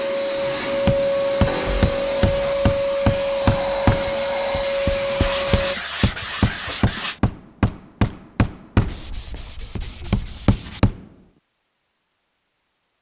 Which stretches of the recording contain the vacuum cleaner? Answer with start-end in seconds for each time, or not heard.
0.0-5.8.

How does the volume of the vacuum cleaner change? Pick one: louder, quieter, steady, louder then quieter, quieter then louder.
steady.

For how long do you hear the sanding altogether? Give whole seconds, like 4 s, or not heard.
6 s.